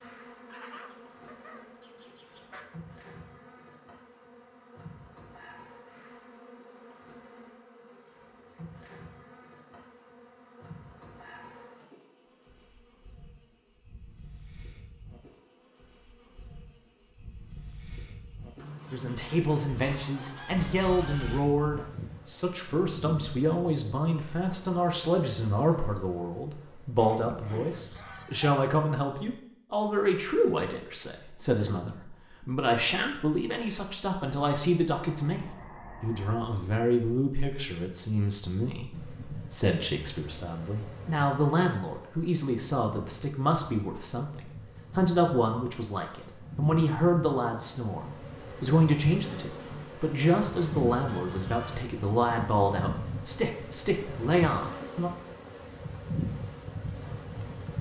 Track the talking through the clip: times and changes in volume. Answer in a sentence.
The talking can be heard from 18.9 to 55.1 s, at a steady volume.